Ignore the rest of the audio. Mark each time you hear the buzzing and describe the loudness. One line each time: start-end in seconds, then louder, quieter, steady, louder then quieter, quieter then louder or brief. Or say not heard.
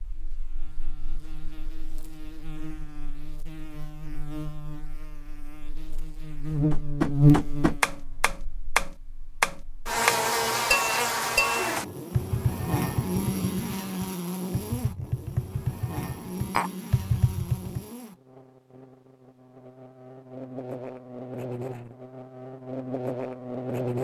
0.0-23.9 louder then quieter.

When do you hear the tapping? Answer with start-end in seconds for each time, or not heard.
6.7-17.8.